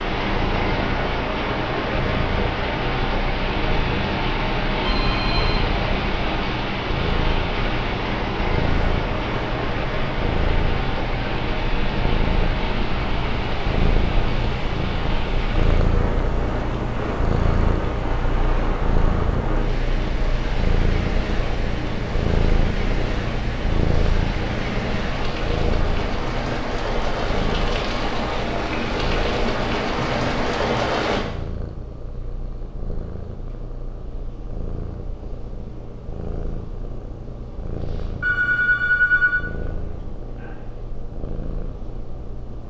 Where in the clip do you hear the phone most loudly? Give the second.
39 s.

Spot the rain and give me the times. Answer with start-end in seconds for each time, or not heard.
0.0-31.2.